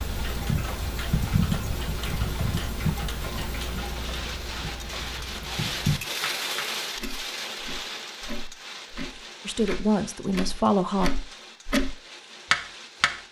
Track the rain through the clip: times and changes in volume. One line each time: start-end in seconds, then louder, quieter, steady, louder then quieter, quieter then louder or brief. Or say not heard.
0.0-13.2 louder then quieter.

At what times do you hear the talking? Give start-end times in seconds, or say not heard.
9.4-11.1.